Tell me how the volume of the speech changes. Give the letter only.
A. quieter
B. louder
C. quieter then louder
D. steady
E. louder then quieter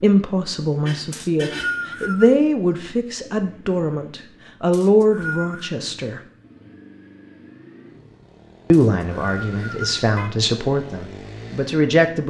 D.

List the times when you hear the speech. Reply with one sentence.
The speech can be heard from 0.0 to 6.2 s and from 8.7 to 12.2 s.